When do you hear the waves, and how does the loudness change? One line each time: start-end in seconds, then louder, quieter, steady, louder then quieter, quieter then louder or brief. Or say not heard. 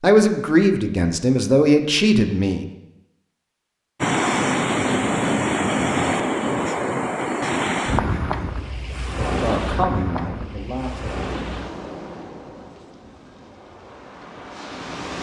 4.0-15.1 quieter.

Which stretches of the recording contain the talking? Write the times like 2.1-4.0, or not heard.
0.0-2.6, 9.2-11.2.